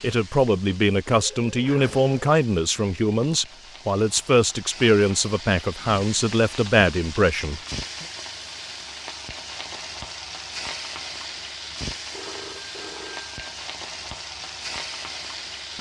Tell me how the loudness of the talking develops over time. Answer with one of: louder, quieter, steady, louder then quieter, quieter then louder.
steady.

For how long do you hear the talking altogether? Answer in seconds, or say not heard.
8 s.